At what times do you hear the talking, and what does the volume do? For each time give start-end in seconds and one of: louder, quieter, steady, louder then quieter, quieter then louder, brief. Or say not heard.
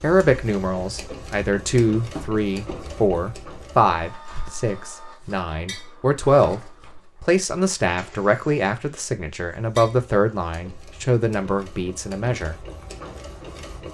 0.0-12.6 steady.